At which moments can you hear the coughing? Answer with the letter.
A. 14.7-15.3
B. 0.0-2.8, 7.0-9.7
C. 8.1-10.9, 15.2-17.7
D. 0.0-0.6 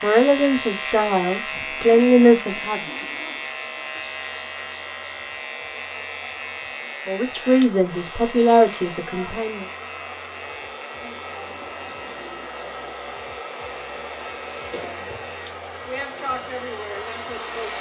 A.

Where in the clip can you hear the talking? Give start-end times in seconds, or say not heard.
0.0-2.8, 7.0-9.7.